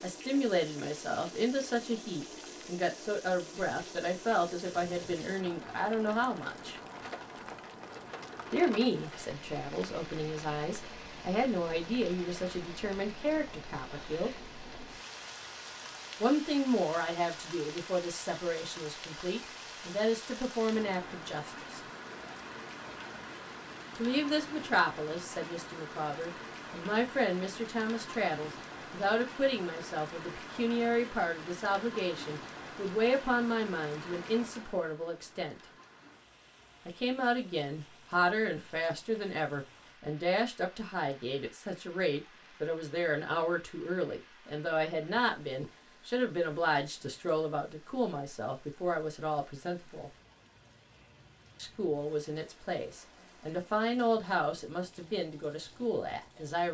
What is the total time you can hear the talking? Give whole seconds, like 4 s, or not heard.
48 s.